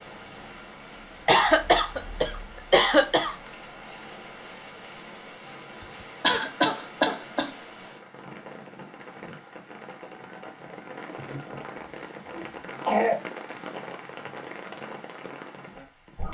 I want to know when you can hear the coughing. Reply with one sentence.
You can hear the coughing from 1.2 to 3.4 s, from 6.2 to 7.5 s and from 11.2 to 13.2 s.